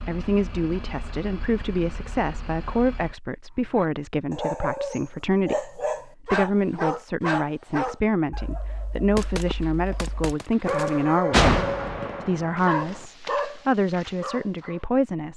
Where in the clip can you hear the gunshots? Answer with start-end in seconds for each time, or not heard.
9.2-13.0.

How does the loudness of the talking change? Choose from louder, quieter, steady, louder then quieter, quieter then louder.
steady.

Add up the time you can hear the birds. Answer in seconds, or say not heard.
not heard.